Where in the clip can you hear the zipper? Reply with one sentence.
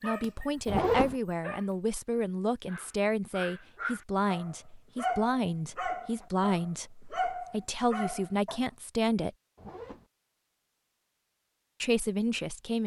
You can hear the zipper from 0.7 to 1.1 s and from 9.6 to 10.1 s.